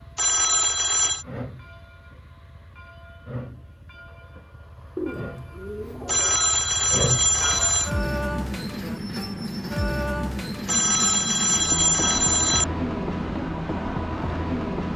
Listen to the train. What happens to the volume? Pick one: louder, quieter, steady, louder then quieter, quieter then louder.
louder.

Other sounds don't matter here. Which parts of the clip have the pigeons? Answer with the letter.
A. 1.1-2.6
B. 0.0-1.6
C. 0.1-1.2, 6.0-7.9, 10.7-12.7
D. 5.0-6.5
D.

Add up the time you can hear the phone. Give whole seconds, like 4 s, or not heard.
5 s.